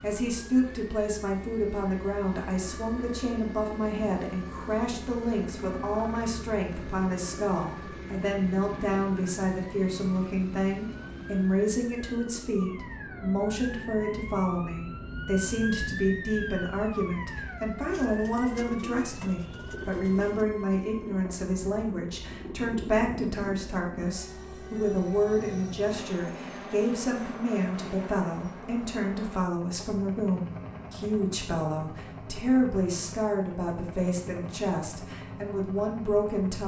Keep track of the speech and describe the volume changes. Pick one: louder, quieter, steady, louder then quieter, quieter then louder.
steady.